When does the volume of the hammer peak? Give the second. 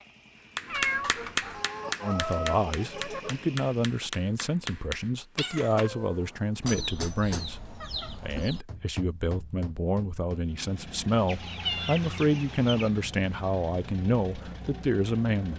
1 s.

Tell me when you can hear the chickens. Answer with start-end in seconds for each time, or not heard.
1.5-3.4, 6.6-8.7, 11.2-12.9.